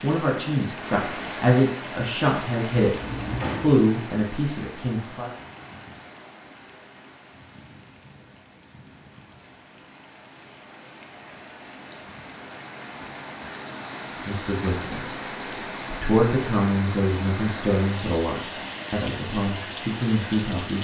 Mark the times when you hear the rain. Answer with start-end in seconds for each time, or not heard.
0.0-20.8.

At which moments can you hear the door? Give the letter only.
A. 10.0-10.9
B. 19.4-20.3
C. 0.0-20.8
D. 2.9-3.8
D.